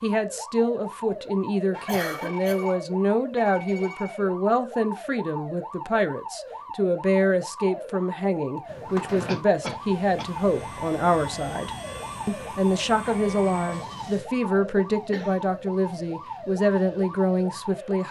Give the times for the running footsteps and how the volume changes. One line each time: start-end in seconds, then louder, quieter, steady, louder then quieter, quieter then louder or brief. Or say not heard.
not heard.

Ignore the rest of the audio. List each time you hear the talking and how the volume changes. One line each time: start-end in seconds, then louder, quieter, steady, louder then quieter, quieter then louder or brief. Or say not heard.
0.0-18.0 steady.